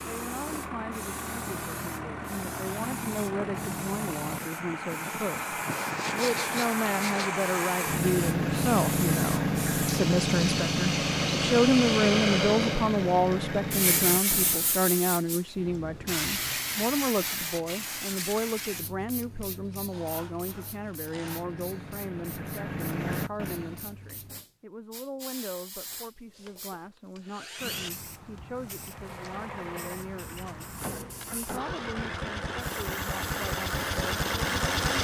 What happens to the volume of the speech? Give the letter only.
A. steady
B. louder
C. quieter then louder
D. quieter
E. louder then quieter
E.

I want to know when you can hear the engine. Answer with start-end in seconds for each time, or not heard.
0.0-14.8, 21.2-23.9, 28.8-34.9.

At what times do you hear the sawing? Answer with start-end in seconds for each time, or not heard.
5.7-7.3, 19.9-21.4, 25.9-27.9.